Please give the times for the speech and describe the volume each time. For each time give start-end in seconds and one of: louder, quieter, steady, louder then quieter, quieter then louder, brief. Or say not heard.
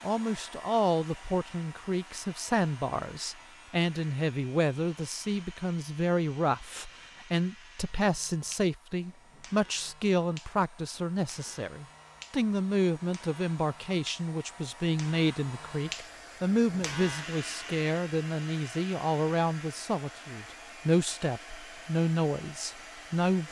0.0-23.4 steady.